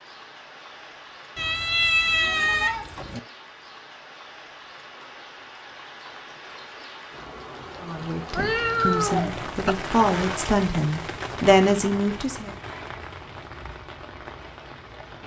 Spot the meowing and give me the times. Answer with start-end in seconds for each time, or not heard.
1.4-3.2, 8.3-9.8.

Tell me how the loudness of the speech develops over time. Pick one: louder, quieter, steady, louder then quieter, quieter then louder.
louder.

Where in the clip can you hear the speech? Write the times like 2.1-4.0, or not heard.
7.8-12.6.